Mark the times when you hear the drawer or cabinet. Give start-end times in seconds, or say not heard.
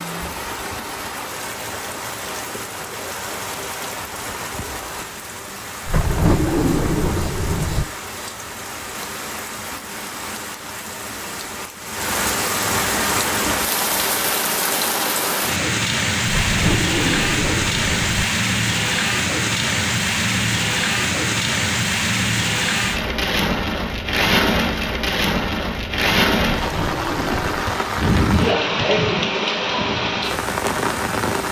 5.8-7.8, 16.2-18.2, 26.6-27.8.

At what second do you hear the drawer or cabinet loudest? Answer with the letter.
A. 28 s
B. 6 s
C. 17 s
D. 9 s
B.